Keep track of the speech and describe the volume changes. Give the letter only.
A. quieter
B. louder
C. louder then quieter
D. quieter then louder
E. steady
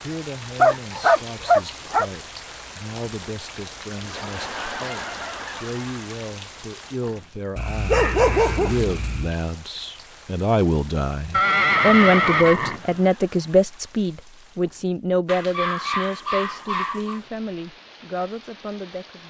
C.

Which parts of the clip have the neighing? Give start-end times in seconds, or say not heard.
11.3-12.9.